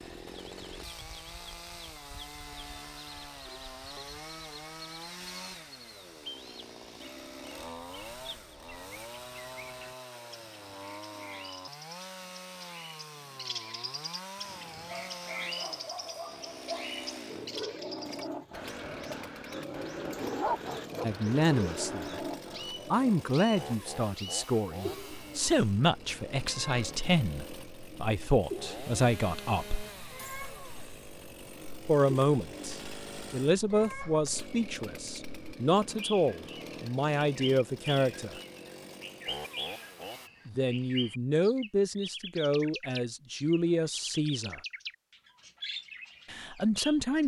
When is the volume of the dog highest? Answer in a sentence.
The loudest moment of the dog is at 20 seconds.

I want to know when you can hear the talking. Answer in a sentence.
You can hear the talking from 21.0 to 29.9 s, from 31.9 to 38.4 s, from 40.5 to 44.6 s and from 46.3 to 47.2 s.